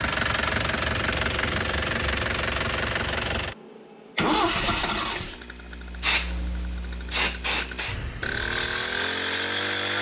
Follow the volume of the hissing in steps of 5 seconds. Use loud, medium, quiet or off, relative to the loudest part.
off, loud.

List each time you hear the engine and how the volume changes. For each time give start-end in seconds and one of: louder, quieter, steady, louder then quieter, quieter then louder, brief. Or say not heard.
0.0-9.9 quieter then louder.